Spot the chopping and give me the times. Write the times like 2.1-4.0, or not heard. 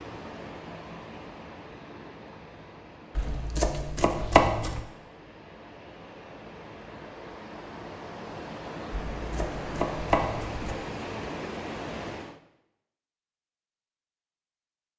3.1-4.8, 8.9-10.8.